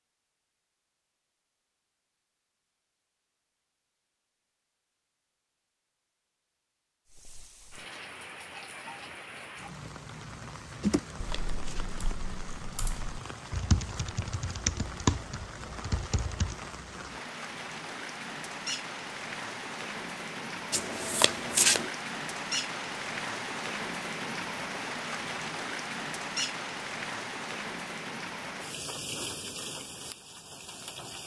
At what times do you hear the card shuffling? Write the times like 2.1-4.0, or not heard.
10.8-11.8, 20.7-21.9.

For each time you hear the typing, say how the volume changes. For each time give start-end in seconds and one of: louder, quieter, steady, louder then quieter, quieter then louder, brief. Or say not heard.
10.8-16.6 louder then quieter.